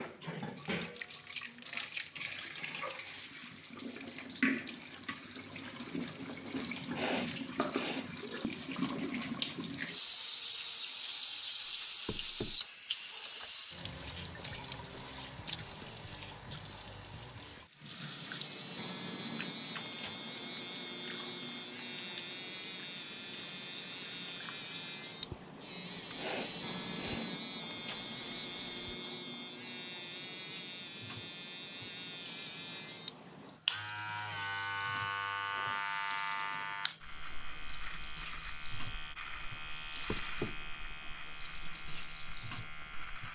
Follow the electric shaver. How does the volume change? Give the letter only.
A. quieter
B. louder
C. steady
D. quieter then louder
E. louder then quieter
A.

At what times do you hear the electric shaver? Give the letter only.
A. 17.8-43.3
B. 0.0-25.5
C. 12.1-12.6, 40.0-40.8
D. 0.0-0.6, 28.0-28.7
A.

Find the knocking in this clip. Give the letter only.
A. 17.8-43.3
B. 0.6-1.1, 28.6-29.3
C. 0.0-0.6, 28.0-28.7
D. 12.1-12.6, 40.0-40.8
D.